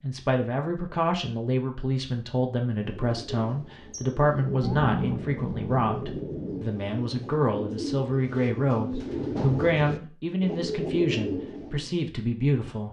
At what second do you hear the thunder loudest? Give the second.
5 s.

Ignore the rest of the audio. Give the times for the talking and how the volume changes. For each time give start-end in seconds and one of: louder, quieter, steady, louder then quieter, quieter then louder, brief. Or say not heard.
0.0-12.8 steady.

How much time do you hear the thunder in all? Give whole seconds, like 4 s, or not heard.
2 s.